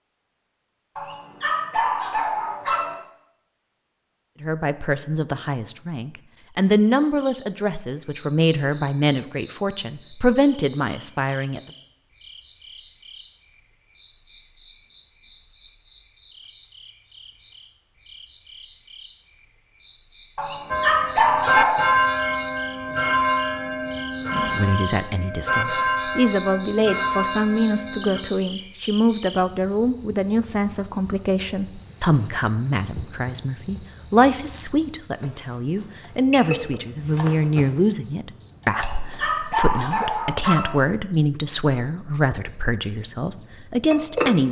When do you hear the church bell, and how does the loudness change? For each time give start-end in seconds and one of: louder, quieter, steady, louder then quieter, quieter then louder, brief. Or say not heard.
20.7-28.2 quieter.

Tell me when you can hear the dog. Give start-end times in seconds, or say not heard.
0.9-3.0, 20.4-21.9, 38.7-40.8.